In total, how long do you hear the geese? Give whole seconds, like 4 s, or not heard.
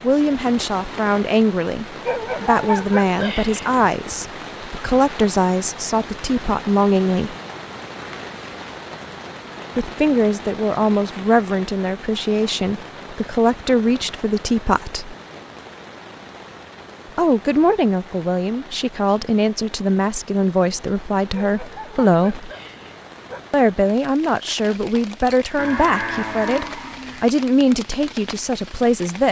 not heard.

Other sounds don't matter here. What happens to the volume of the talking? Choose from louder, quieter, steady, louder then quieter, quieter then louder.
steady.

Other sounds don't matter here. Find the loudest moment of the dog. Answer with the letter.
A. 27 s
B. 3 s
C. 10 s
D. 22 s
B.